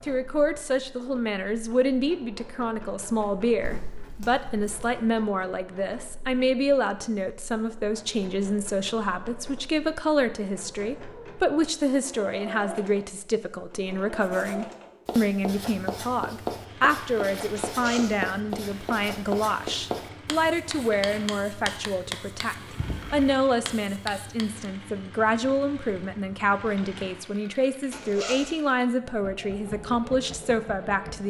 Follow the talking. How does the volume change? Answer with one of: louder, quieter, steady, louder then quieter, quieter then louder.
steady.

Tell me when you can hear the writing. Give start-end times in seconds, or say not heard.
14.2-24.7.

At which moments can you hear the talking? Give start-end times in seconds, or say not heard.
0.0-31.2.